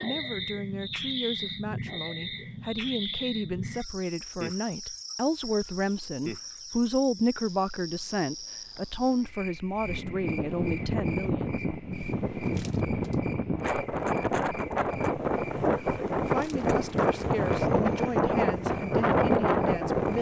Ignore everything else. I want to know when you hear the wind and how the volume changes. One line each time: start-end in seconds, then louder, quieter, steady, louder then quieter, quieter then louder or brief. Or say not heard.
9.8-20.1 louder.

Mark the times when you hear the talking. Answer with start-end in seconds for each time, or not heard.
0.0-11.6, 16.1-20.1.